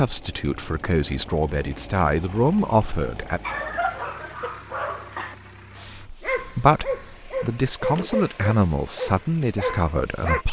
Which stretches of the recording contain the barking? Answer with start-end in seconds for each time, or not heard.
3.4-10.4.